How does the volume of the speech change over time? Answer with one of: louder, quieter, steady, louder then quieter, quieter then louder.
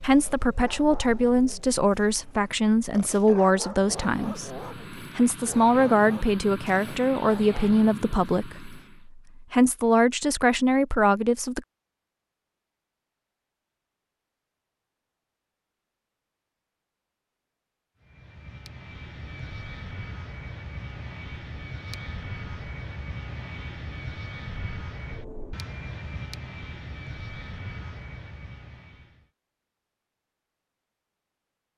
steady.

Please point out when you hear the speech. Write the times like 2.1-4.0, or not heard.
0.0-11.6.